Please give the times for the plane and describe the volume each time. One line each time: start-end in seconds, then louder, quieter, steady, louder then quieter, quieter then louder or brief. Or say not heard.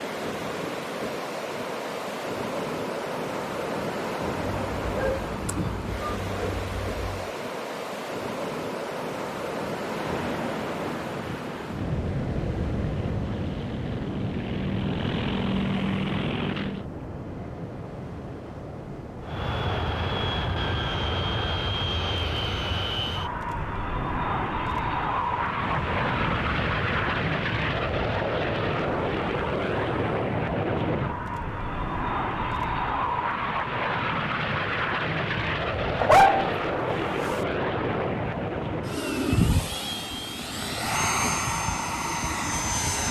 9.8-16.9 quieter then louder
19.2-43.0 steady.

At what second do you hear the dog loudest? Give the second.
36 s.